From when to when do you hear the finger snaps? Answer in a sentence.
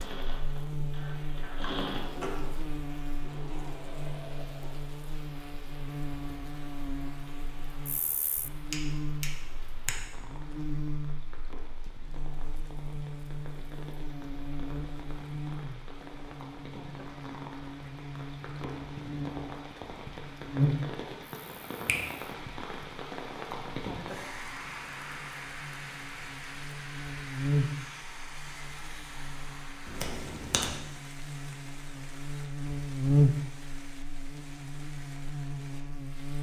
The finger snaps can be heard from 8.7 to 9.9 s, from 21.4 to 22.1 s and from 29.9 to 30.8 s.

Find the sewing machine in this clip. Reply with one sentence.
The sewing machine can be heard from 0.0 to 4.7 s.